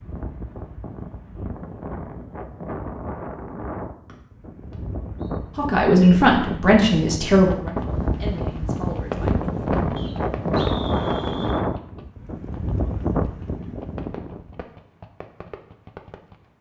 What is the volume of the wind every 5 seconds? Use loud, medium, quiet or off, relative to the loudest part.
medium, loud, loud, off.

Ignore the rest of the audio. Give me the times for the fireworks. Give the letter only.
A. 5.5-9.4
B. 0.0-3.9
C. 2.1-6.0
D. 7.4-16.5
D.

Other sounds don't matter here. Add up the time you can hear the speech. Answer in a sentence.
The speech can be heard for 4 seconds in total.